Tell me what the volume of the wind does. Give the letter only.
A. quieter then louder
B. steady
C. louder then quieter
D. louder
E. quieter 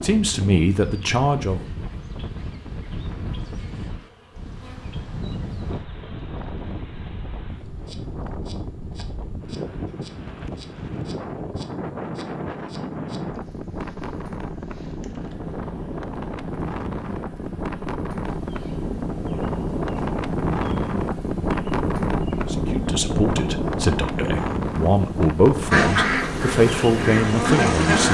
D.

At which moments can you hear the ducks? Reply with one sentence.
The ducks can be heard from 25.7 to 28.0 s.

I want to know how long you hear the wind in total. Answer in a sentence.
The wind can be heard for 28 seconds in total.